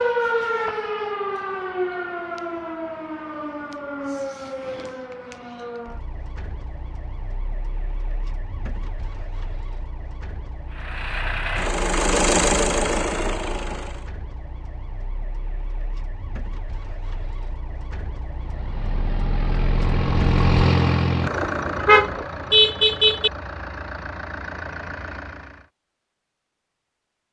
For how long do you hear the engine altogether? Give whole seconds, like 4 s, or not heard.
11 s.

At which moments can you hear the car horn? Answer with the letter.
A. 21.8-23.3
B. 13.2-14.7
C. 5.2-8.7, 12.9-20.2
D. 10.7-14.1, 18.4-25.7
A.